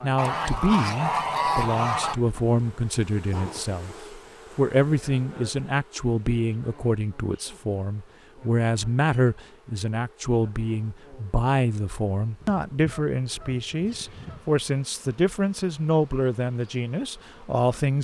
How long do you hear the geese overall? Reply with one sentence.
You can hear the geese for 4 seconds altogether.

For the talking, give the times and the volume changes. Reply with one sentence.
The talking can be heard from 0.0 to 17.9 s, at a steady volume.